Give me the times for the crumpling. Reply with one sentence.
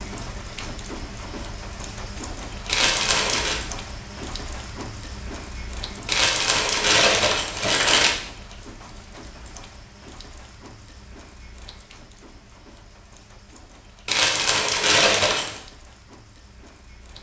The crumpling can be heard from 2.6 to 3.6 s, from 6.0 to 8.1 s and from 14.1 to 15.6 s.